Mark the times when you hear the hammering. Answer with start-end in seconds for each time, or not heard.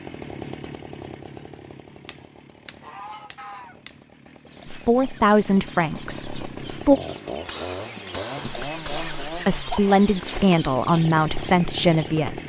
1.9-4.0, 7.0-9.3.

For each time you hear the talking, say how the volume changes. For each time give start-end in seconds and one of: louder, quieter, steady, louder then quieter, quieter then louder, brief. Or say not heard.
4.7-7.0 brief
8.4-12.4 louder.